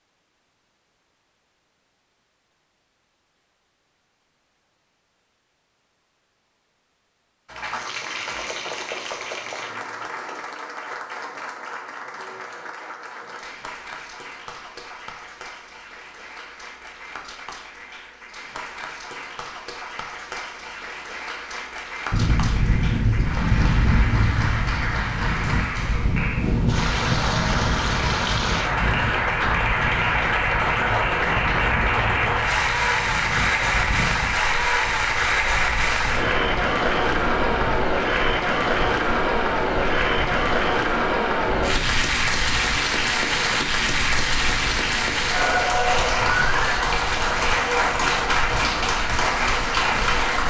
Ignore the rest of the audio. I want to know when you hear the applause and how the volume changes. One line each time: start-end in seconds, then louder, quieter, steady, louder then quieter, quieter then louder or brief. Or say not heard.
7.5-50.4 louder.